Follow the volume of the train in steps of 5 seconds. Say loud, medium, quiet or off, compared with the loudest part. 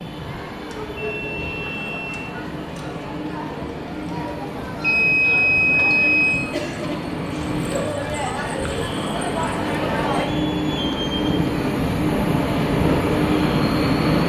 quiet, medium, loud.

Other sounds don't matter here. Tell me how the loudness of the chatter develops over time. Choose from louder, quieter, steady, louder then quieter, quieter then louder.
louder.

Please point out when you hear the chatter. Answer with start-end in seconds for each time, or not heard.
0.1-10.2.